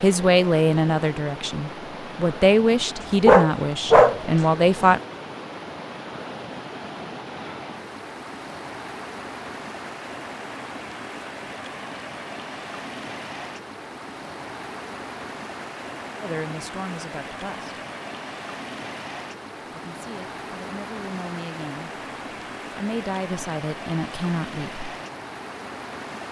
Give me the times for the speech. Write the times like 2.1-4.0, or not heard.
0.0-5.0, 16.2-17.8, 19.7-21.9, 22.8-24.9.